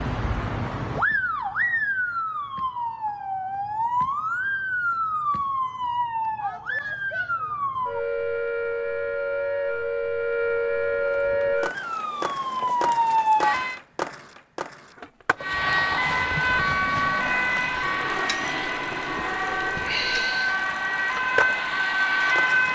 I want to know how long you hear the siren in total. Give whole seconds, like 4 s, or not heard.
21 s.